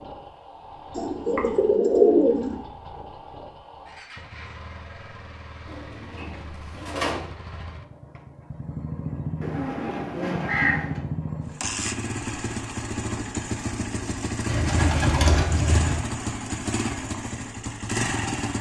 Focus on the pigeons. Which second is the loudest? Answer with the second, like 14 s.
2 s.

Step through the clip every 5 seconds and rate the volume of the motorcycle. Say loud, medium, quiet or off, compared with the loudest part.
quiet, medium, loud, loud.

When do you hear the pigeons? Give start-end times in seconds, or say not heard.
0.9-2.6, 5.7-7.2, 9.4-11.0, 14.4-16.0.